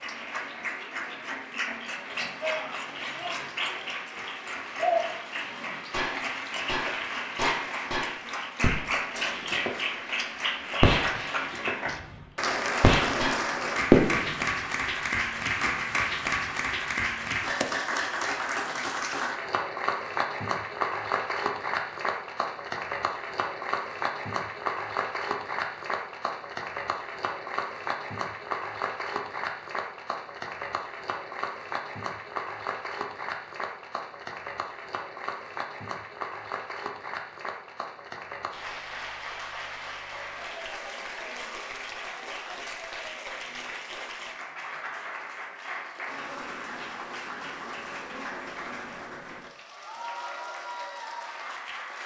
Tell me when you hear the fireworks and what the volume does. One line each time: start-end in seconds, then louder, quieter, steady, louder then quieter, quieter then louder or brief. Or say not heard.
5.5-9.8 quieter
10.8-11.8 brief
12.8-14.4 brief.